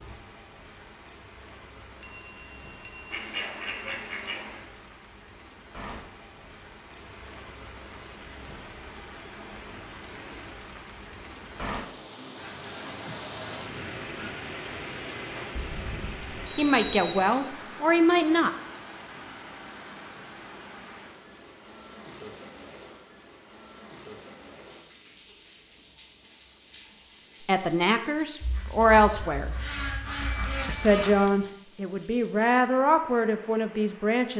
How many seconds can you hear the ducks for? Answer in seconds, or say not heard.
6 s.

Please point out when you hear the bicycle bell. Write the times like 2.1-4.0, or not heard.
2.0-3.9, 15.6-17.1, 30.2-31.4.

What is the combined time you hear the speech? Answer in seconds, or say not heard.
8 s.